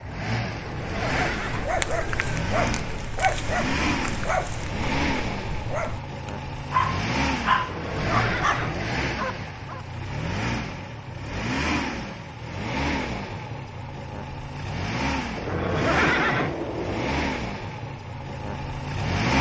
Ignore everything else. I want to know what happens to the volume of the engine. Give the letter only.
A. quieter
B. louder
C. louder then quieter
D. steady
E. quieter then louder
D.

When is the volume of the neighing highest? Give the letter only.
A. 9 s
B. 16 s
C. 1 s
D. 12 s
B.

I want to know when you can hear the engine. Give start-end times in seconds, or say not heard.
0.0-19.3.